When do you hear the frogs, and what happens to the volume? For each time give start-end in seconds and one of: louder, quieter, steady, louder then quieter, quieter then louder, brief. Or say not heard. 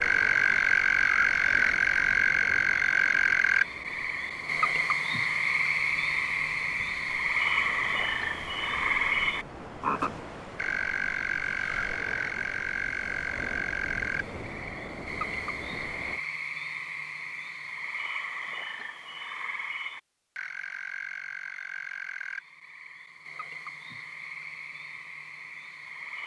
0.0-26.2 quieter.